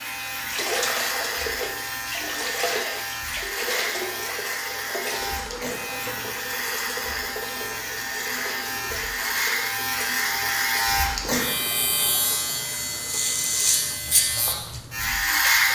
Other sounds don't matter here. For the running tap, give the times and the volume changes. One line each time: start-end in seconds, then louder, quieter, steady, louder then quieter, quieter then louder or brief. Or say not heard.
0.0-15.7 quieter.